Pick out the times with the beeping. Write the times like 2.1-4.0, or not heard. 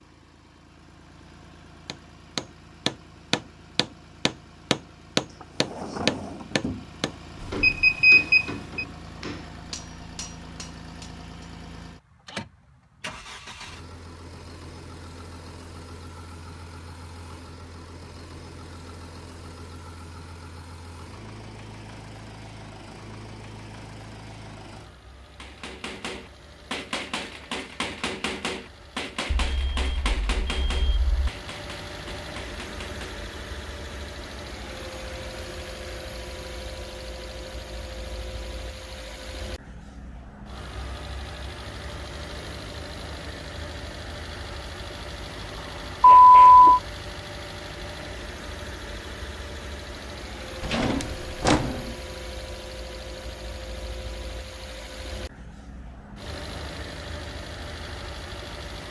7.4-8.8, 29.4-31.2, 46.0-46.8.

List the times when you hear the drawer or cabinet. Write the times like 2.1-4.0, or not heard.
5.2-7.1, 50.6-52.0.